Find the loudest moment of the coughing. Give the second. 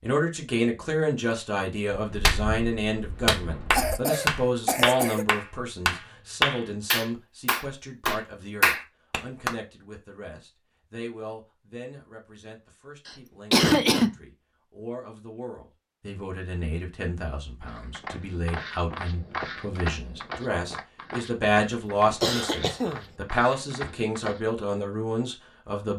14 s.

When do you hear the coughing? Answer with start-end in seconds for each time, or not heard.
3.7-5.2, 13.1-14.1, 22.2-23.1.